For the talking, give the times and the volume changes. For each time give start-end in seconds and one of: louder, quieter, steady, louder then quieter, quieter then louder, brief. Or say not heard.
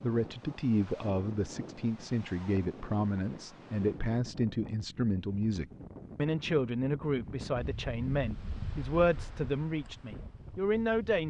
0.0-11.2 steady.